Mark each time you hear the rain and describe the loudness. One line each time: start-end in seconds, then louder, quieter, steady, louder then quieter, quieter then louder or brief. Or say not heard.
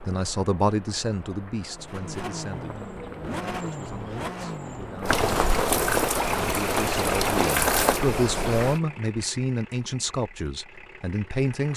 0.0-8.8 louder.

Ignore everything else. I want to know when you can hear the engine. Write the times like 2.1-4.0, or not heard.
1.7-11.7.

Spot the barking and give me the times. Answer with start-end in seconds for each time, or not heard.
not heard.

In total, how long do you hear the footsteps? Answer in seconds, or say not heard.
not heard.